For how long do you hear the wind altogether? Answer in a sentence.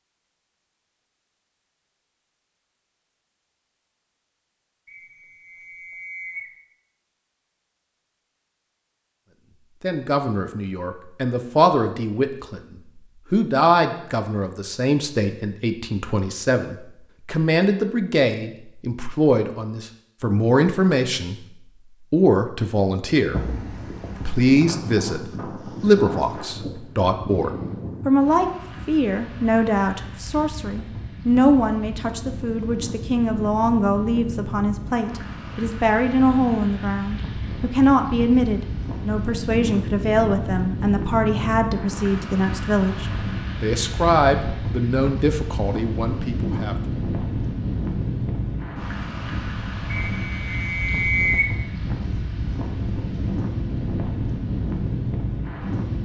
The wind can be heard for 33 seconds in total.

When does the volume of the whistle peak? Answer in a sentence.
The volume of the whistle peaks at 51 seconds.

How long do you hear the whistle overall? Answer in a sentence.
You can hear the whistle for 3 seconds altogether.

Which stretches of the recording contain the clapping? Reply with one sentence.
The clapping can't be heard in this clip.